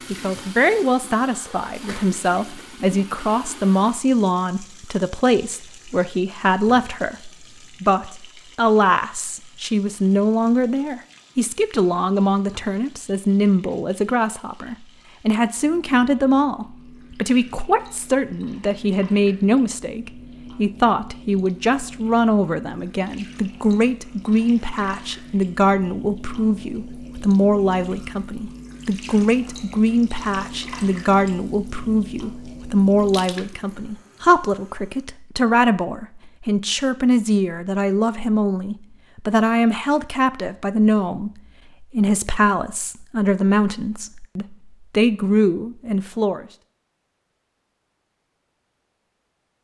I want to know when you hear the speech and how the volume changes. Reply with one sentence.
You can hear the speech from 0.1 to 46.5 s, at a steady volume.